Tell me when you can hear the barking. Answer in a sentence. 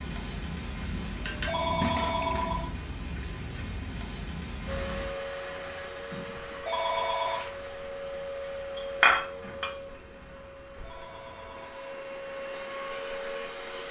You can't hear the barking here.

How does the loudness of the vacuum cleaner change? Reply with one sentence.
The volume of the vacuum cleaner goes down, then up.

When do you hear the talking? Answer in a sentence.
The talking can't be heard in this clip.